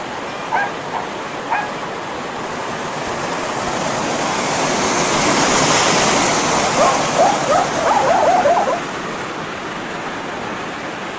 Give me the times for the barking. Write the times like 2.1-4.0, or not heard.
0.3-1.9, 6.8-8.8.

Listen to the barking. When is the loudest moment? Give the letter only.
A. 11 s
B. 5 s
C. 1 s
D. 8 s
D.